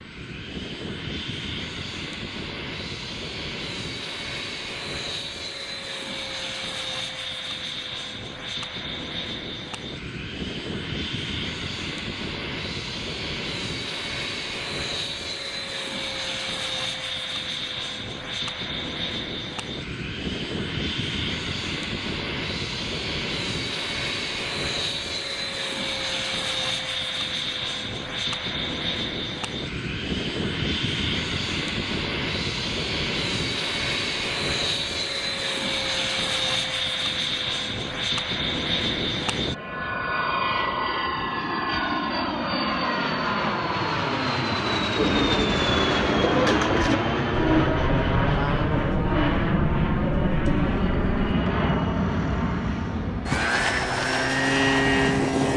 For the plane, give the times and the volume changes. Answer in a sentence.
The plane can be heard from 0.0 to 55.5 s, getting louder.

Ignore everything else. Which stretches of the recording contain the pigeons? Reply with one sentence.
The pigeons can be heard from 45.0 to 51.3 s.